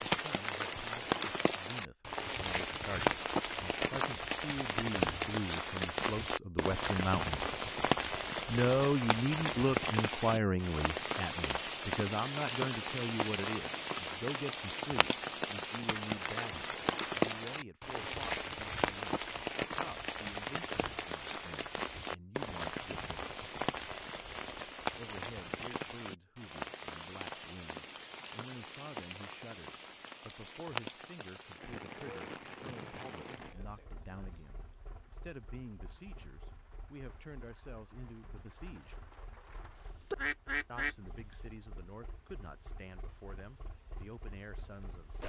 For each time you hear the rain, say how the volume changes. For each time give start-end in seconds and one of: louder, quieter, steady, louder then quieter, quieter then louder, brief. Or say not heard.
0.0-45.2 quieter.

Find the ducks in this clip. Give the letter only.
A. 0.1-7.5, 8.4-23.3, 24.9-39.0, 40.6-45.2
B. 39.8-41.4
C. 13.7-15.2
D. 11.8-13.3
B.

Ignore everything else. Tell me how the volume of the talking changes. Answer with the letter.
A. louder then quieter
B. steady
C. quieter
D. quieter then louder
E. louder
C.